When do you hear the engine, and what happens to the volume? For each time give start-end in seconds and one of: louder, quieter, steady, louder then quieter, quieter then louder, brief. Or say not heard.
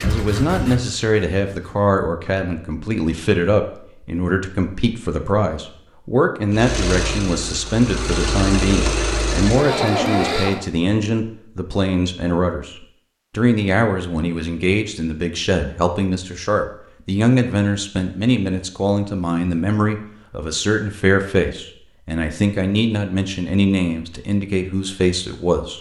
0.0-1.9 brief
6.5-10.7 louder.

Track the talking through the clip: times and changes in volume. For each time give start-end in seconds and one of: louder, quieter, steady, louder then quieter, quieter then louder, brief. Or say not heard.
0.0-25.7 steady.